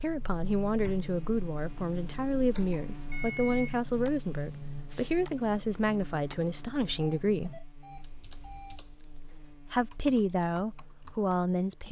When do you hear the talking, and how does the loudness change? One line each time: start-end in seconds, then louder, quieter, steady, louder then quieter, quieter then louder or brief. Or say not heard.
0.0-7.5 steady
9.2-11.8 brief.